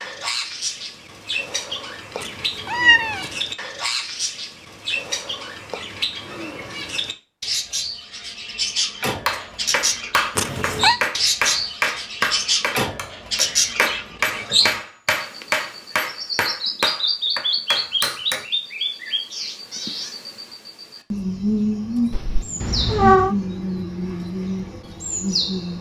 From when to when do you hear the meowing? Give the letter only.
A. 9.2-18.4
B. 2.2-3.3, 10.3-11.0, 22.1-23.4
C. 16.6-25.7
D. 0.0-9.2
B.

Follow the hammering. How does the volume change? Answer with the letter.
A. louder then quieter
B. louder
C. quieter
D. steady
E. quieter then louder
D.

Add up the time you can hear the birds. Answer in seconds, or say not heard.
26 s.